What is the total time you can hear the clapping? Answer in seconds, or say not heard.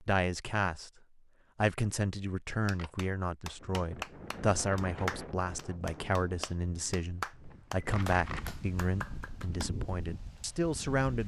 7 s.